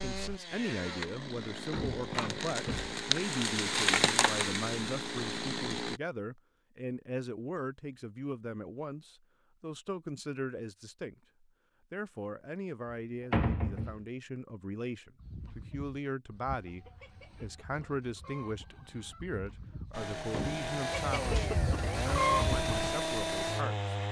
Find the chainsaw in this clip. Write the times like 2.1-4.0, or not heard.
0.0-6.0, 19.9-24.0.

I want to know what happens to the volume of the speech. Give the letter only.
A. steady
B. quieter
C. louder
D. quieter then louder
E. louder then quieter
A.